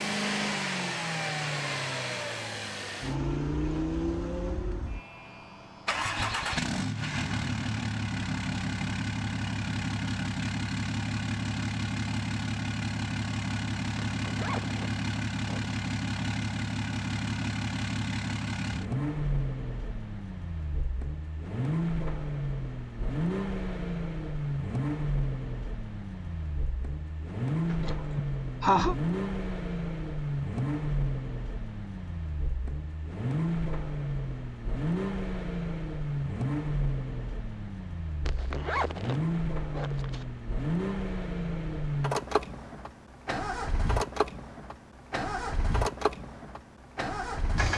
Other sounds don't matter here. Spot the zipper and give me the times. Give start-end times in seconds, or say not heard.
14.1-15.8, 38.2-40.2.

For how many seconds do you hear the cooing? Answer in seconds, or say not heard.
not heard.